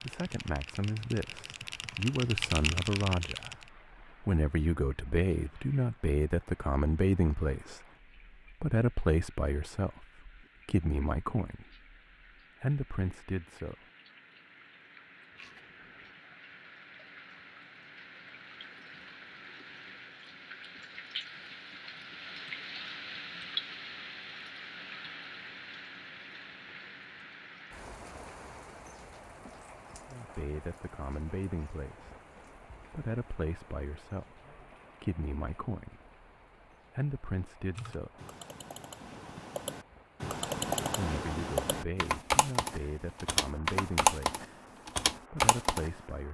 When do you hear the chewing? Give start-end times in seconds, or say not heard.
15.3-16.1.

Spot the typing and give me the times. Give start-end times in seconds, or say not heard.
0.0-3.7, 37.8-46.0.